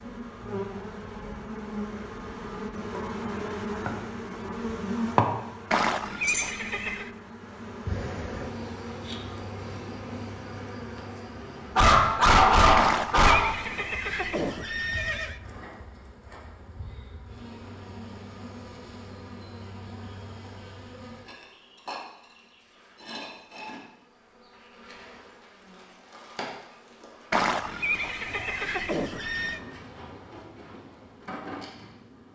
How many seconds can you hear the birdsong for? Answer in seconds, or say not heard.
not heard.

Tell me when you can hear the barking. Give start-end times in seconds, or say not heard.
11.8-13.3.